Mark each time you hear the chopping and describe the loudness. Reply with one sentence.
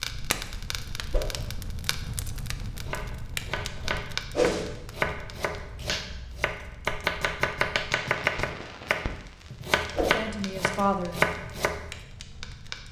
The chopping can be heard from 2.8 to 11.9 s, getting louder.